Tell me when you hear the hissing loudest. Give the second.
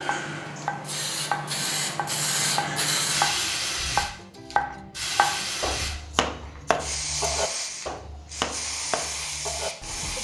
3 s.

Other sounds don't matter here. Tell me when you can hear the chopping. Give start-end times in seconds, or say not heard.
0.0-10.1.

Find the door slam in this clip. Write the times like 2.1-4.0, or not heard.
not heard.